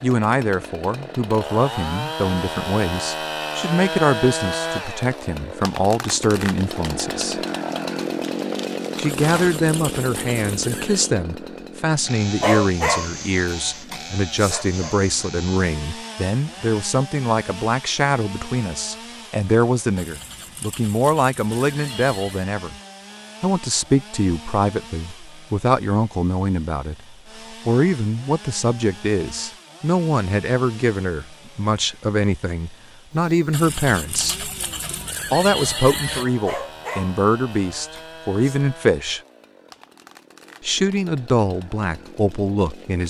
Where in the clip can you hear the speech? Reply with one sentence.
The speech can be heard from 0.0 to 7.4 s, from 8.9 to 22.8 s, from 23.4 to 34.5 s, from 35.3 to 39.2 s and from 40.6 to 43.0 s.